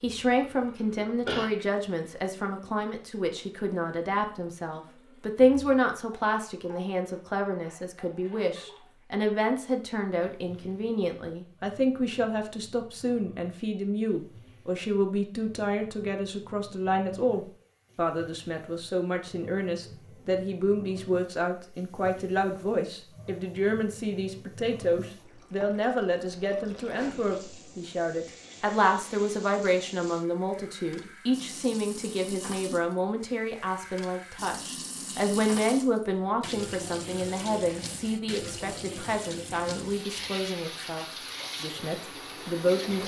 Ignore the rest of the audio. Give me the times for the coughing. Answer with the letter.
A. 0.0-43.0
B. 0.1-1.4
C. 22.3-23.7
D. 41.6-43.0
B.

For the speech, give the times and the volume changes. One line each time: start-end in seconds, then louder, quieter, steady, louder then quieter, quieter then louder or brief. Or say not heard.
0.0-43.0 steady.